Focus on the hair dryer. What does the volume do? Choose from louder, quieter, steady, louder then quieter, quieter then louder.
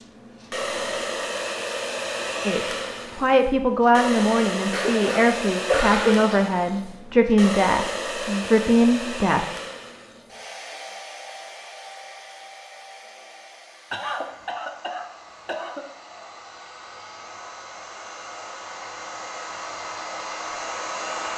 quieter then louder.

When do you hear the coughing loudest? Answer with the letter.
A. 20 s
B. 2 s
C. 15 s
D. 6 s
D.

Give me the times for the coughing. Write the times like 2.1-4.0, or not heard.
4.7-6.3, 13.9-15.8.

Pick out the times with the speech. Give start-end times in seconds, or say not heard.
2.5-9.4.